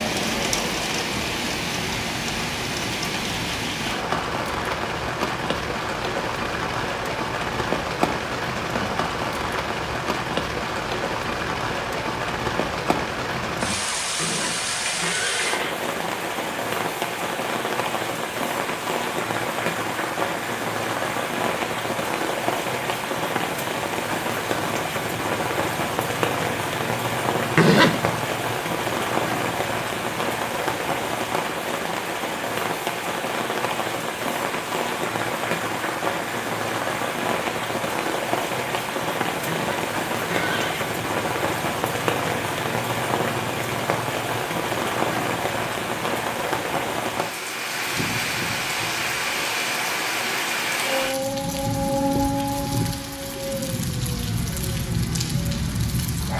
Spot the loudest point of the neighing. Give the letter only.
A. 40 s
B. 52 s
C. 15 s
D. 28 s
D.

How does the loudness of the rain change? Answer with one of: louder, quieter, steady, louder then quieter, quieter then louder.
steady.